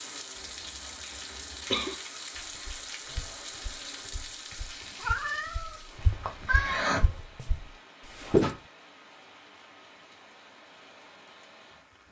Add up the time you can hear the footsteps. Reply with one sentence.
The footsteps can be heard for 6 seconds in total.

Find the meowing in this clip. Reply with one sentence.
You can hear the meowing from 4.8 to 7.2 s.